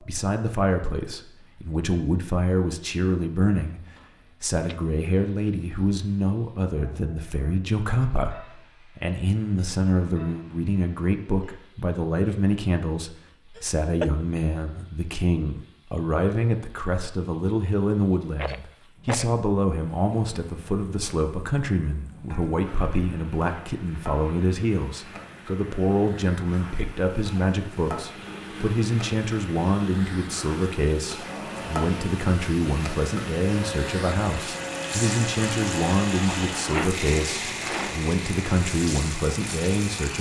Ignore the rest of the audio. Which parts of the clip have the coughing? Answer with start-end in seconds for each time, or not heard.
13.6-14.2.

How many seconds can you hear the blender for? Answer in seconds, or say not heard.
12 s.